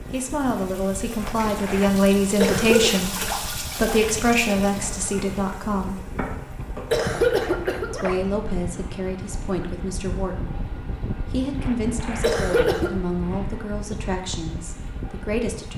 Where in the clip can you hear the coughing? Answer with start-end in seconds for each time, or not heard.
2.4-2.9, 6.9-7.9, 12.2-12.9.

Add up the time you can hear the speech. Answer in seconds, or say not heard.
13 s.